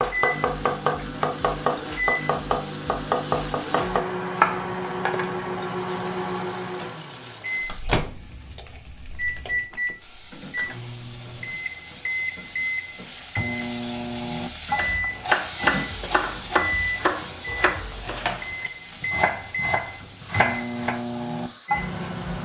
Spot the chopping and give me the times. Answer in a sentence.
You can hear the chopping from 0.0 to 5.2 s and from 14.8 to 21.0 s.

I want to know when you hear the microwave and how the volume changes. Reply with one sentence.
You can hear the microwave from 0.0 to 22.4 s, at a steady volume.